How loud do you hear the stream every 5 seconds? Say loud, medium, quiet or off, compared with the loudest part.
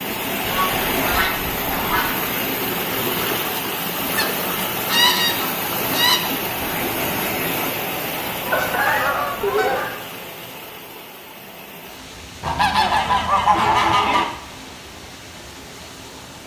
loud, loud, quiet, quiet.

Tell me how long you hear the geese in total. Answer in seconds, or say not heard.
7 s.